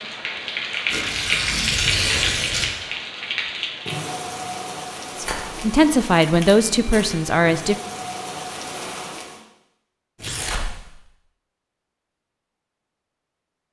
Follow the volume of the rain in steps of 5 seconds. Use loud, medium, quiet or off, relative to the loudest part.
loud, medium, off.